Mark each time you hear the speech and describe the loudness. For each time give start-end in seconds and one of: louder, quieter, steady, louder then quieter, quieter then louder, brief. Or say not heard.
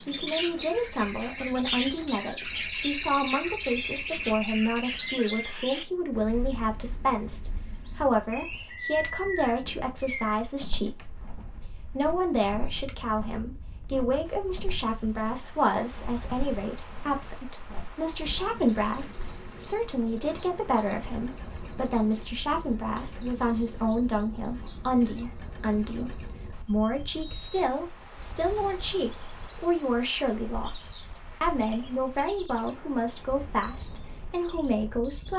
0.1-35.3 steady.